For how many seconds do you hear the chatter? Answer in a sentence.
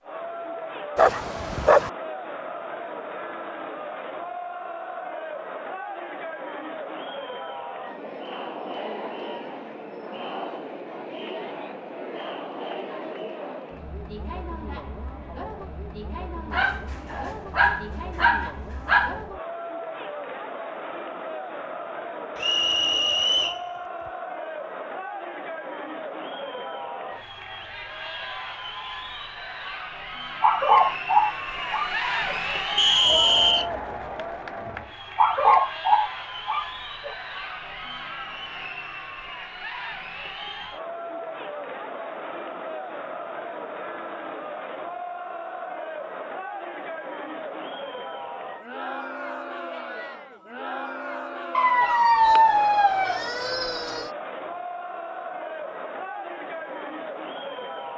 The chatter can be heard for 58 seconds in total.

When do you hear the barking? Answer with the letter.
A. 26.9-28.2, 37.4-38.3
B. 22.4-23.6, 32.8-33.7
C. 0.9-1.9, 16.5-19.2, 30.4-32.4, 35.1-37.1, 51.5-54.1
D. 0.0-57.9
C.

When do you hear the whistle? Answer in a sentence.
The whistle can be heard from 22.4 to 23.6 s and from 32.8 to 33.7 s.